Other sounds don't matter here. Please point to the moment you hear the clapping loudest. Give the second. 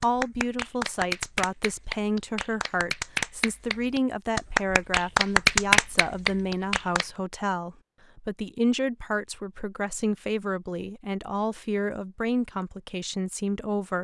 6 s.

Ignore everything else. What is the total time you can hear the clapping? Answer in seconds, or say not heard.
7 s.